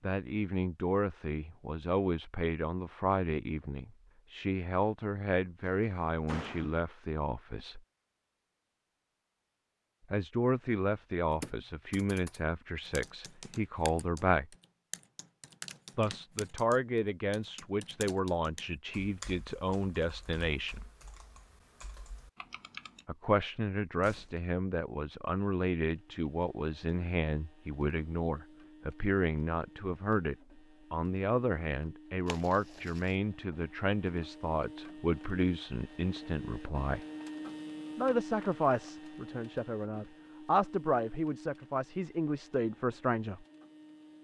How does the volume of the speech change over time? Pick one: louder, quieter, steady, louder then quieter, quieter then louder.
steady.